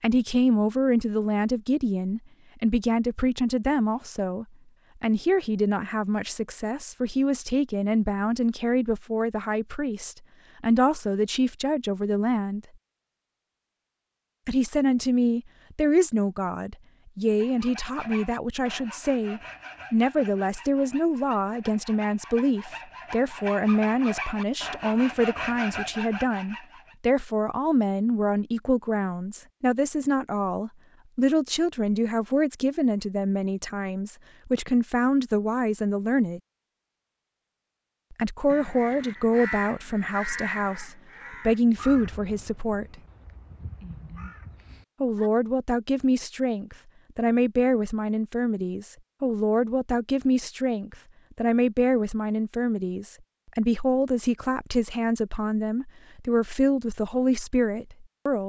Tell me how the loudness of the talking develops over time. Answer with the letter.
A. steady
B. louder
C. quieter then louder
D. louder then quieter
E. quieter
A.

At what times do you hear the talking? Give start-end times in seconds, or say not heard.
0.0-12.6, 14.4-36.4, 38.1-43.0, 45.0-58.4.